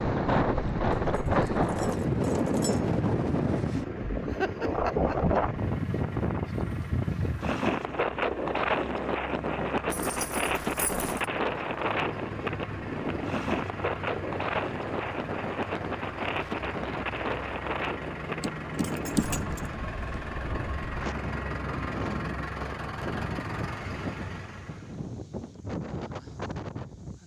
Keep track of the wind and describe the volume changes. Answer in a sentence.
The loudness of the wind goes down.